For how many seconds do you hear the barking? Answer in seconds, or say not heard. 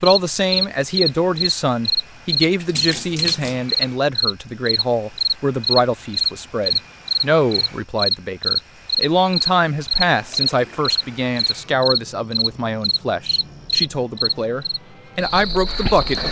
not heard.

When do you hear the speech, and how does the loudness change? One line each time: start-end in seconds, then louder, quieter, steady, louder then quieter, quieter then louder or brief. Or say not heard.
0.0-16.2 steady.